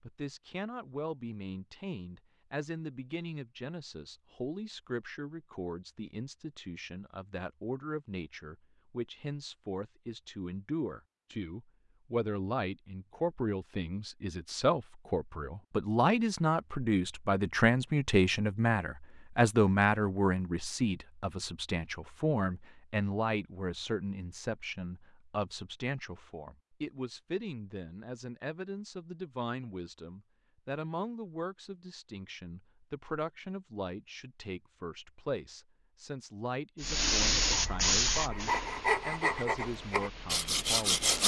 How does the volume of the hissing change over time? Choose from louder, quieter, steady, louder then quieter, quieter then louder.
quieter.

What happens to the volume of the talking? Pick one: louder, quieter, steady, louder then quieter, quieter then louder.
louder then quieter.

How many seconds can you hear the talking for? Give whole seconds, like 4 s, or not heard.
41 s.